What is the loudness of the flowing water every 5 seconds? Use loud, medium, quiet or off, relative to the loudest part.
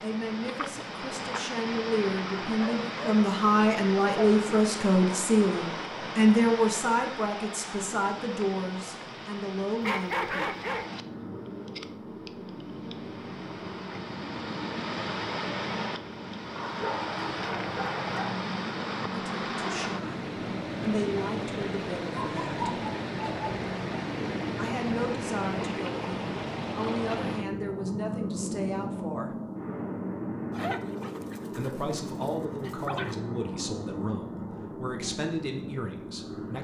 loud, loud, medium, loud, loud, loud, off, off.